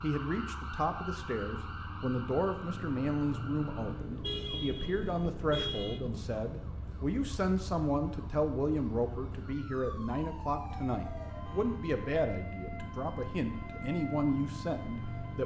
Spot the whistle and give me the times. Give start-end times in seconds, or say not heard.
not heard.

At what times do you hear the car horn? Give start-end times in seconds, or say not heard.
4.2-6.0, 10.7-11.9.